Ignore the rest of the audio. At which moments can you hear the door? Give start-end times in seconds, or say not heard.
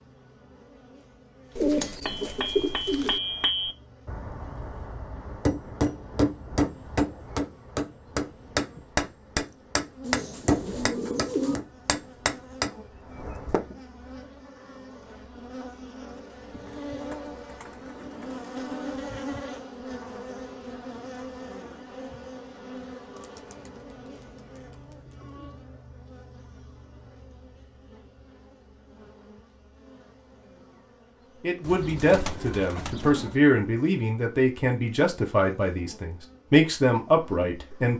not heard.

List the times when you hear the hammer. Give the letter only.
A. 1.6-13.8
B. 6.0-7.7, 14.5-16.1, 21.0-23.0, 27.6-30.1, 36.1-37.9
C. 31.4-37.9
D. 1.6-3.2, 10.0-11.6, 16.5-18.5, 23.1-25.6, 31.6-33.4
A.